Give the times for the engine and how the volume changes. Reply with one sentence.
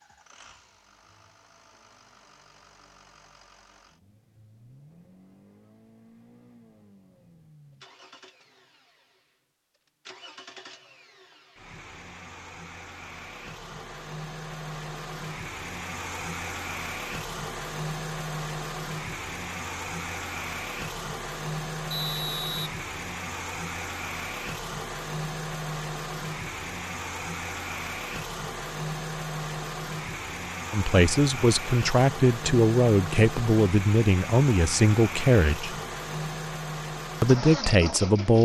You can hear the engine from 0.0 to 38.4 s, getting louder.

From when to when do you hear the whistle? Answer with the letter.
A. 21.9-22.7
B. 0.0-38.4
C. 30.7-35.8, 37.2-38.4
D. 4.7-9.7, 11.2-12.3
A.